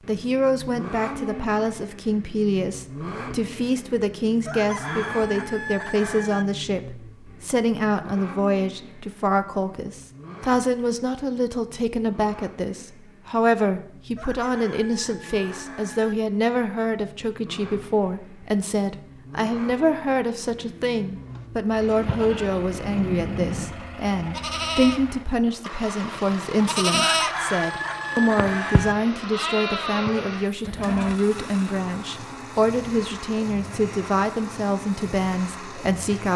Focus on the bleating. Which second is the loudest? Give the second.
27 s.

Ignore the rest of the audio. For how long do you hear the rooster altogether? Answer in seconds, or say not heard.
6 s.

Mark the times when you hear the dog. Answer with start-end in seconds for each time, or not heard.
not heard.